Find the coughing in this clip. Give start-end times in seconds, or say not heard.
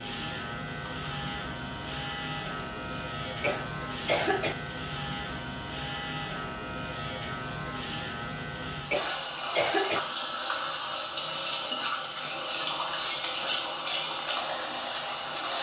3.4-4.5, 8.9-10.0.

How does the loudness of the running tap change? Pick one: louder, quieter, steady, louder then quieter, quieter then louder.
louder.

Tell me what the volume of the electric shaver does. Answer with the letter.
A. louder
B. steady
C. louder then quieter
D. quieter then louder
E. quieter
E.